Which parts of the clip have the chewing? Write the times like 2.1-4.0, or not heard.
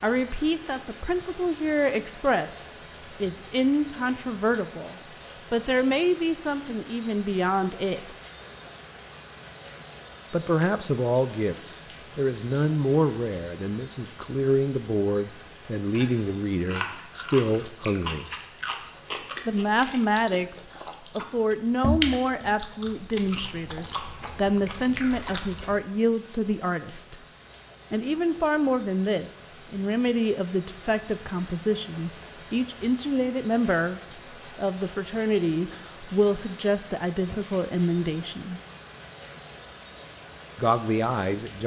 15.9-25.8.